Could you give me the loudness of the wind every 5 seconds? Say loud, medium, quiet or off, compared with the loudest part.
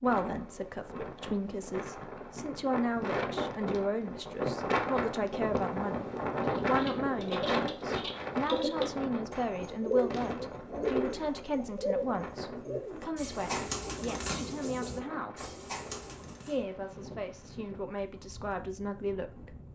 loud, loud, medium, quiet.